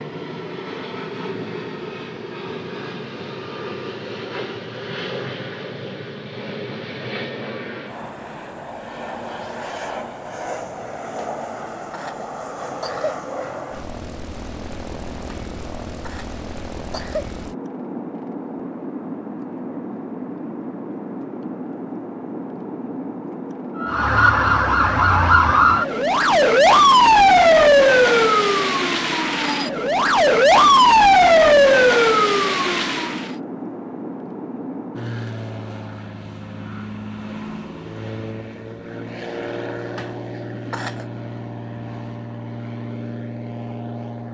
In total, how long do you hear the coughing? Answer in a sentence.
The coughing can be heard for 5 seconds in total.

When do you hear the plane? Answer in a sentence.
You can hear the plane from 0.0 to 44.3 s.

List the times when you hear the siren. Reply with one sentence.
The siren can be heard from 23.8 to 33.4 s.